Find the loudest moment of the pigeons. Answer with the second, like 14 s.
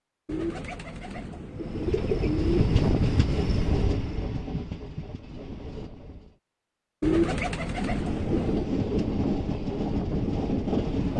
7 s.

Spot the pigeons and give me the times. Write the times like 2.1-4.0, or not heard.
0.2-2.7, 7.0-8.7.